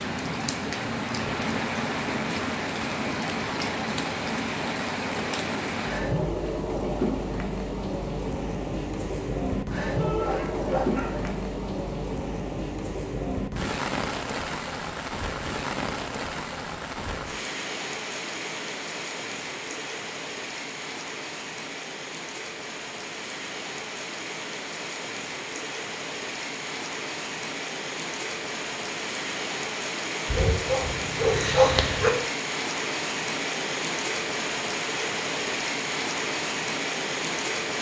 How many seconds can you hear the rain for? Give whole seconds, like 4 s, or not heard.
38 s.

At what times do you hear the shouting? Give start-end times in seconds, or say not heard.
9.9-10.4.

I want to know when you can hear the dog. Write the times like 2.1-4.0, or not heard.
10.2-11.4, 30.3-32.1.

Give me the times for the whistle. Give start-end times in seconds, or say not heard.
not heard.